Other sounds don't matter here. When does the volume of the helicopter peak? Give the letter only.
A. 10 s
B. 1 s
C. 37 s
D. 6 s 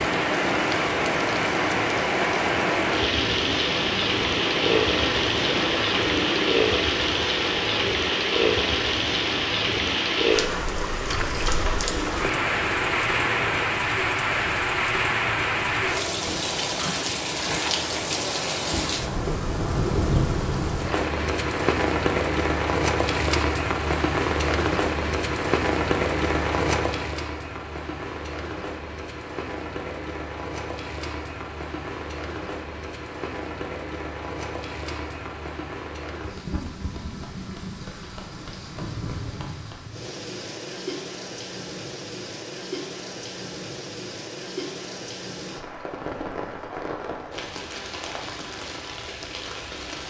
D.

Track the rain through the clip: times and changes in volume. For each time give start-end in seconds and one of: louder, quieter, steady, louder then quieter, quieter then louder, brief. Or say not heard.
0.0-50.0 quieter.